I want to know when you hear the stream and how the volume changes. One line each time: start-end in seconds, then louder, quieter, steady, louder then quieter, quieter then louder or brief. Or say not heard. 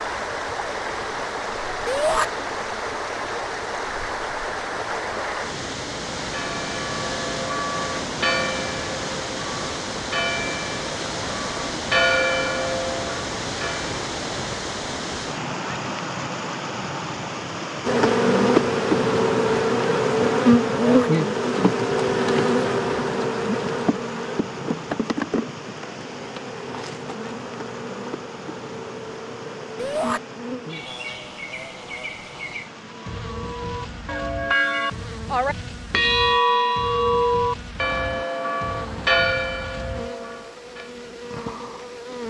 0.0-42.2 quieter.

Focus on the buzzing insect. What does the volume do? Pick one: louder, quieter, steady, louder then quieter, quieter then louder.
quieter.